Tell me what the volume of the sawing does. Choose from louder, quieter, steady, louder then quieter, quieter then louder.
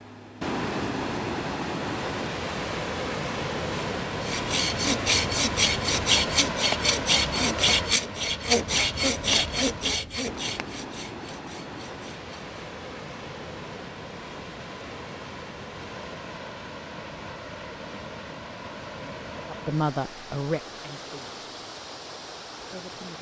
quieter.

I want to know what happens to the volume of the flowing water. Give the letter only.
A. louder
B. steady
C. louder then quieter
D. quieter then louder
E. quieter
E.